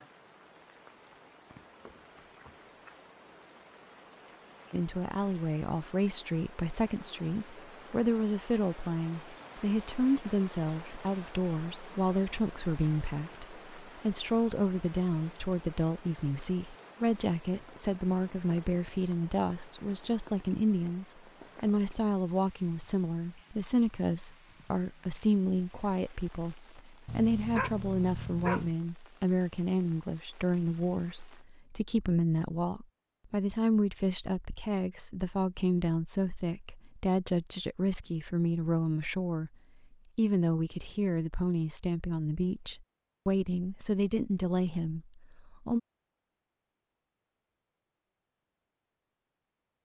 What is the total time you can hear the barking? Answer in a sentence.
The barking can be heard for 2 seconds in total.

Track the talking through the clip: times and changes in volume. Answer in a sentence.
You can hear the talking from 4.7 to 39.5 s, at a steady volume; and from 40.1 to 45.8 s, at a steady volume.